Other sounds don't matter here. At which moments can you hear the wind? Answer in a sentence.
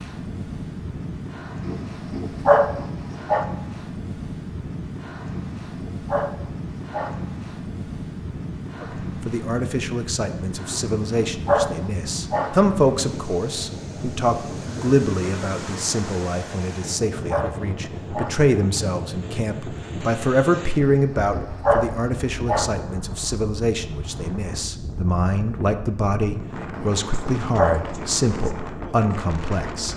You can hear the wind from 0.0 to 29.9 s.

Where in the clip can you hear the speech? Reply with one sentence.
The speech can be heard from 8.8 to 29.9 s.